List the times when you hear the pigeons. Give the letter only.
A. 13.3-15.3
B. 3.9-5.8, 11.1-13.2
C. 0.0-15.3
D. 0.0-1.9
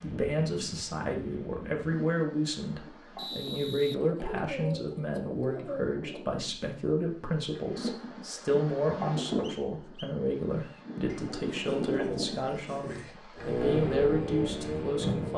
B.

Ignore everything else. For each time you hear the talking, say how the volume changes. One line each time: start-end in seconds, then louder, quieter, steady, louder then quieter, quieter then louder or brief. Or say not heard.
0.0-15.3 steady.